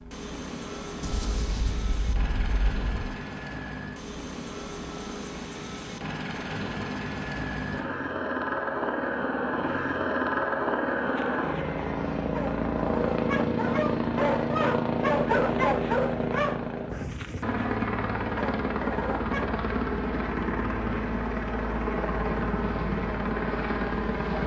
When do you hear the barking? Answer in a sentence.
The barking can be heard from 11.1 to 19.5 s.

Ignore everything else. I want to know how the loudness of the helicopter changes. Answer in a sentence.
The volume of the helicopter goes up.